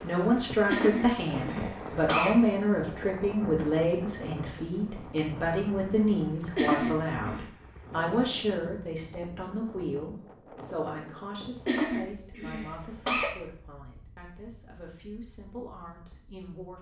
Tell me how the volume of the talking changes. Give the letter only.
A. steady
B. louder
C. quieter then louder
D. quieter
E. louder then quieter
D.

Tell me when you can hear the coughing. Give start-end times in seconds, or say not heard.
0.7-2.3, 6.5-7.5, 11.7-13.2.